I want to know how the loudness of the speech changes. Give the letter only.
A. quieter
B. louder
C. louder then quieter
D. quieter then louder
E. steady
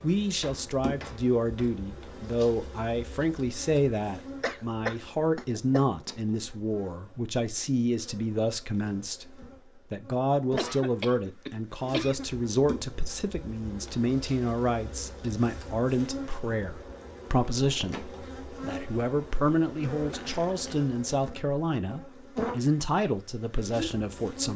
E.